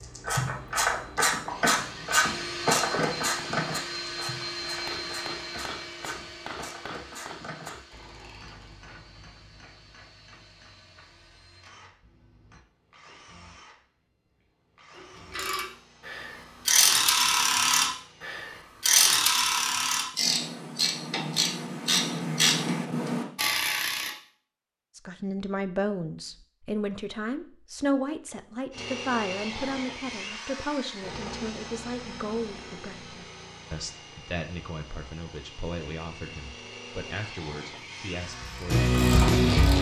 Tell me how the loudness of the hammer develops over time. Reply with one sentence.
The loudness of the hammer goes down.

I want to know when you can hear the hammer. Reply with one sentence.
The hammer can be heard from 4.7 to 12.6 s.